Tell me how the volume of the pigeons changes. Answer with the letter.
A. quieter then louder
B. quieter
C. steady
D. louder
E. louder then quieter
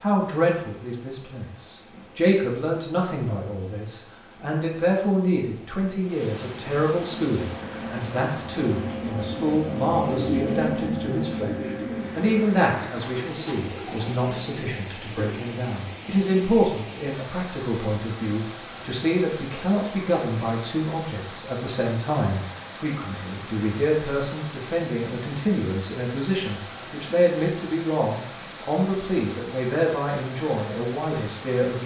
E.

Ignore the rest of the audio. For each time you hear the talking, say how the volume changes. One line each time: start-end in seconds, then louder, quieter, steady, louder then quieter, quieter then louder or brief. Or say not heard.
0.0-31.8 steady.